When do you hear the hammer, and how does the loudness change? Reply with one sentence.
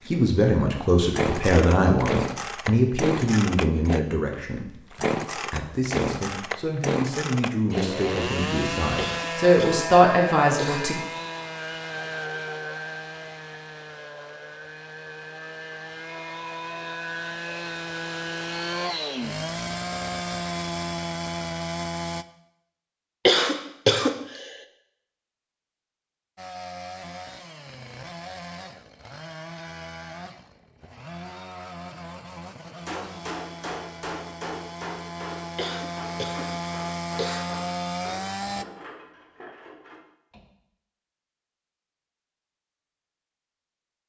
You can hear the hammer from 32.6 to 40.5 s, getting quieter.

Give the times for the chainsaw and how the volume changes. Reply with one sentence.
You can hear the chainsaw from 0.0 to 22.2 s, getting quieter then louder; and from 26.4 to 38.6 s, getting louder.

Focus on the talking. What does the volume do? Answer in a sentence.
The volume of the talking goes down, then up.